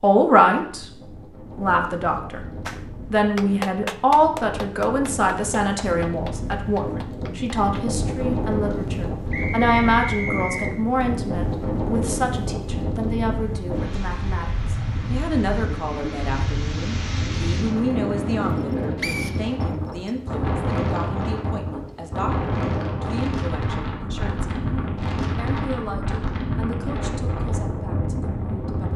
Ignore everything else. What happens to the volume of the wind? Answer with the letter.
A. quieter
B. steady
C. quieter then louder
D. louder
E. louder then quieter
D.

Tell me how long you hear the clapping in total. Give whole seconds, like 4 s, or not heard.
5 s.